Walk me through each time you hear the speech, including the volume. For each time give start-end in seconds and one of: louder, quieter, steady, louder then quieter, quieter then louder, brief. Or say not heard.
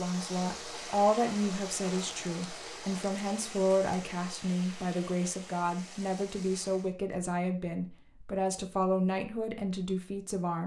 0.0-10.6 steady.